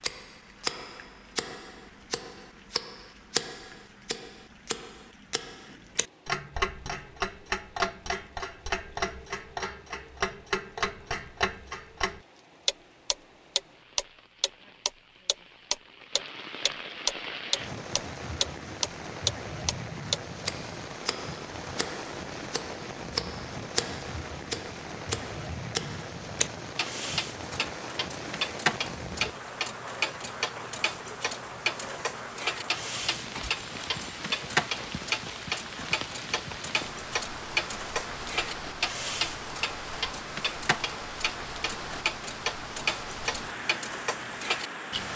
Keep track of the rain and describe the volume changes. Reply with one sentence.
The volume of the rain goes up.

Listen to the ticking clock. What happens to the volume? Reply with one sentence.
The loudness of the ticking clock stays about the same.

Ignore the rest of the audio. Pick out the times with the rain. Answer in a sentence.
The rain can be heard from 0.1 to 45.1 s.